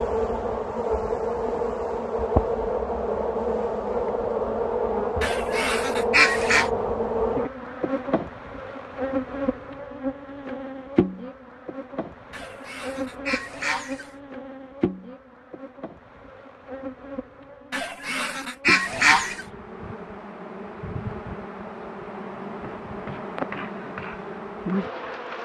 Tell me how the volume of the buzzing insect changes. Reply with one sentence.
The loudness of the buzzing insect goes down, then up.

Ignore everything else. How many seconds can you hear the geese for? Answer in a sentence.
You can hear the geese for 5 seconds altogether.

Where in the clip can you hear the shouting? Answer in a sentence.
You can't hear the shouting here.